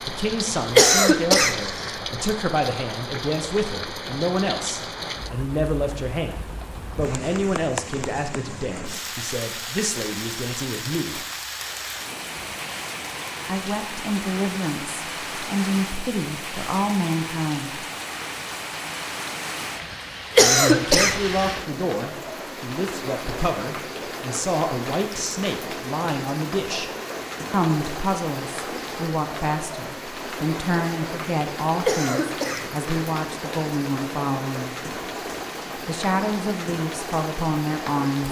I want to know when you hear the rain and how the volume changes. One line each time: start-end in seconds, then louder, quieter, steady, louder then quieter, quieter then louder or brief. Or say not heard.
0.0-38.2 steady.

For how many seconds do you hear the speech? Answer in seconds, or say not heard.
32 s.